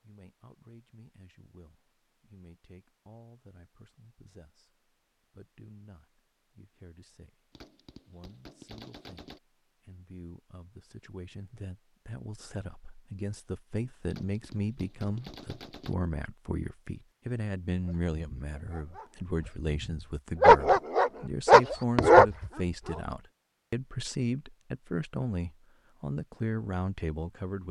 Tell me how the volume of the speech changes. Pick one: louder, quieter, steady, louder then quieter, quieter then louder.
louder.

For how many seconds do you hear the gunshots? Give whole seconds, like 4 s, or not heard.
4 s.